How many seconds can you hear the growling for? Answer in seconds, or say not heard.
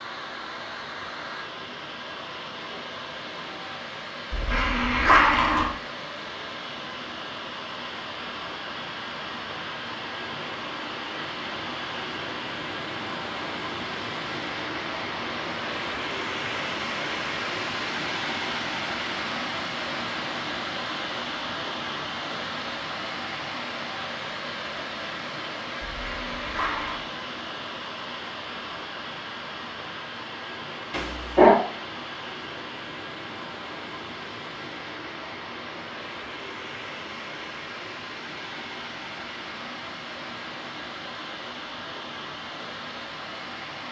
3 s.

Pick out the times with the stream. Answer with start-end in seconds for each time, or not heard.
0.0-43.8.